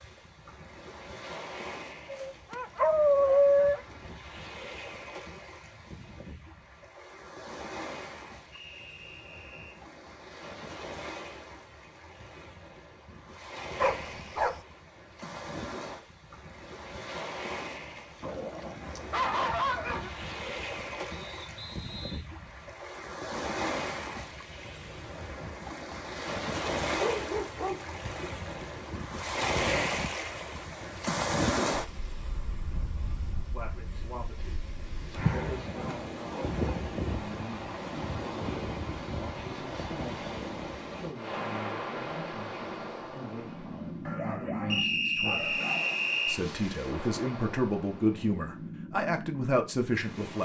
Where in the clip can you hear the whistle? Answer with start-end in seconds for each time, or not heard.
8.5-9.8, 21.1-22.2, 44.7-46.4.